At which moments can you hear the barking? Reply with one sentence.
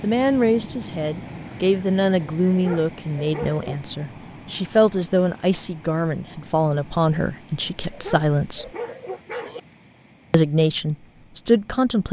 You can hear the barking from 2.5 to 3.8 s and from 7.6 to 9.6 s.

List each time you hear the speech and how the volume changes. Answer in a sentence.
The speech can be heard from 0.0 to 8.7 s, at a steady volume; and briefly from 10.3 to 12.0 s.